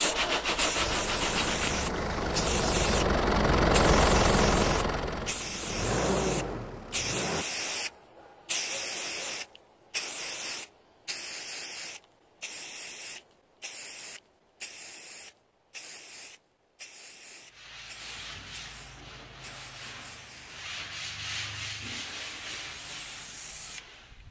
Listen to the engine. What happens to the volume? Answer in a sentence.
The volume of the engine goes up, then down.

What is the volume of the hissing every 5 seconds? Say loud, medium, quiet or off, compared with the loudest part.
loud, loud, medium, quiet, quiet.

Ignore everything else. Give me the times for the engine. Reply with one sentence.
The engine can be heard from 0.0 to 7.5 s.